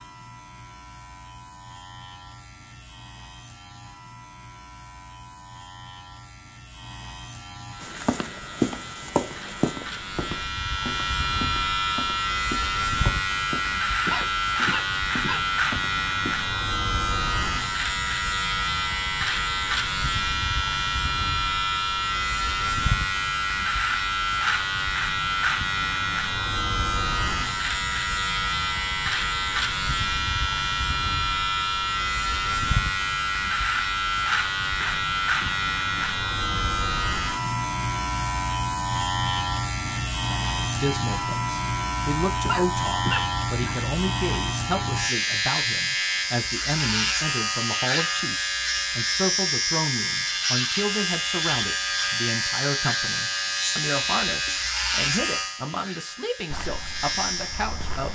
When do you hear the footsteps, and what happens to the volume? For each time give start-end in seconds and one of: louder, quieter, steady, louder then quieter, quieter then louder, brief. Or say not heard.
7.8-16.5 quieter
56.5-58.0 brief.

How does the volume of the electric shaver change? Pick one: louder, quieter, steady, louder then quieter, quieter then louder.
louder.